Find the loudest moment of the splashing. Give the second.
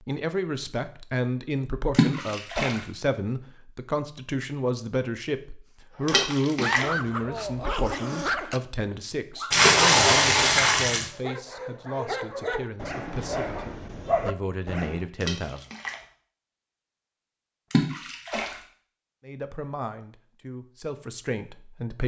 10 s.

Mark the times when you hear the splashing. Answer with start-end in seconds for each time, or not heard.
1.9-2.8, 6.0-6.8, 9.5-11.1, 15.2-15.9, 17.7-18.6.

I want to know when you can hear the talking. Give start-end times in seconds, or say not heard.
0.0-15.7, 19.2-22.0.